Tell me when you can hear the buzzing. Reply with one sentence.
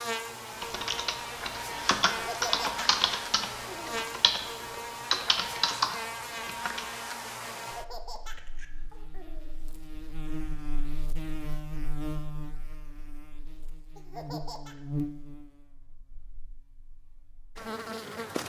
The buzzing can be heard from 0.0 to 18.4 s.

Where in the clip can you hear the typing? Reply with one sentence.
The typing can be heard from 0.5 to 7.0 s.